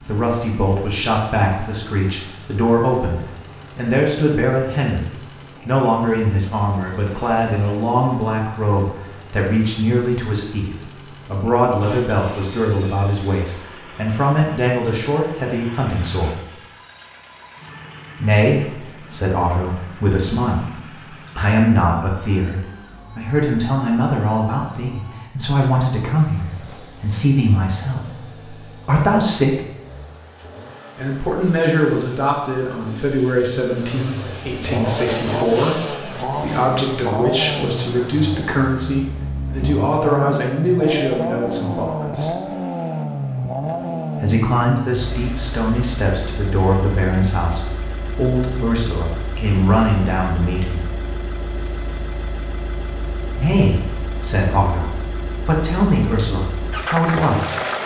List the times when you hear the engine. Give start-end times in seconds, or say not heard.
0.0-57.8.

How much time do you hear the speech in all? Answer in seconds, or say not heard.
50 s.